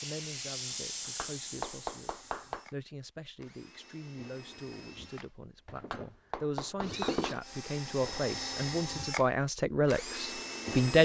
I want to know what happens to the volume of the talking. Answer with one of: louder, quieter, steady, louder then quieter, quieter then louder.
louder.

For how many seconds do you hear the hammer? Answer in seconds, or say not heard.
3 s.